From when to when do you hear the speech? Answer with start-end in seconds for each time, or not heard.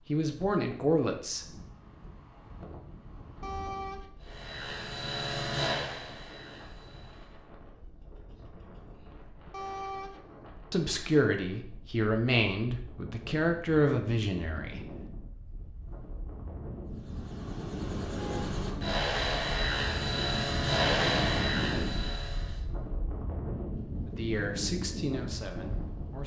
0.1-1.6, 10.7-14.9, 24.1-26.2.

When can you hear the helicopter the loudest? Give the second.
21 s.